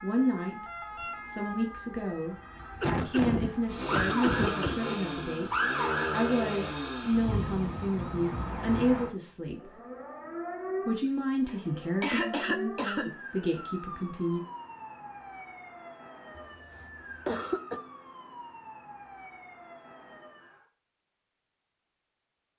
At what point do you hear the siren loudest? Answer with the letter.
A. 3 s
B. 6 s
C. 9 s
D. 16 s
B.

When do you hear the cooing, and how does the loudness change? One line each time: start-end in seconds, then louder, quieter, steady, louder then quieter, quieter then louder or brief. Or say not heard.
not heard.